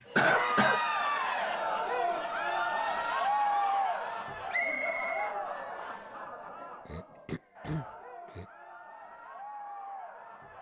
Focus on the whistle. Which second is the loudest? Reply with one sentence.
The loudest moment of the whistle is at 5 seconds.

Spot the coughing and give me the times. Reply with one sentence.
You can hear the coughing from 0.1 to 0.8 s and from 6.8 to 8.4 s.